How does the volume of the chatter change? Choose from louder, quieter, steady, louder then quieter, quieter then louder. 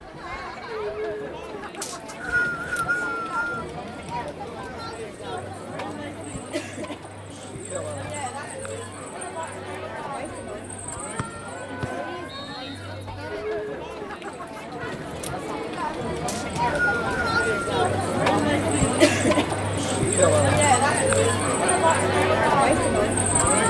louder.